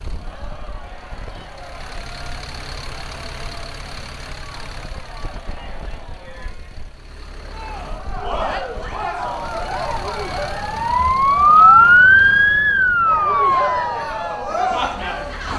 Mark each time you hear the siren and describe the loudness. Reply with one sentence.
You can hear the siren from 9.2 to 15.5 s, getting louder then quieter.